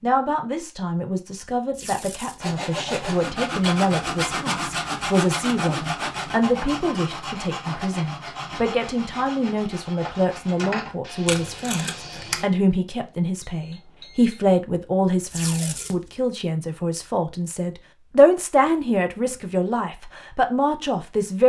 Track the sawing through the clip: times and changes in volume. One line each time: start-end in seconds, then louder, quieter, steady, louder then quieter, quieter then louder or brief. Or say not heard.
2.4-12.4 quieter.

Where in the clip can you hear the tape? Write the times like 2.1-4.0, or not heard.
1.7-2.5, 11.2-12.4, 15.3-16.1.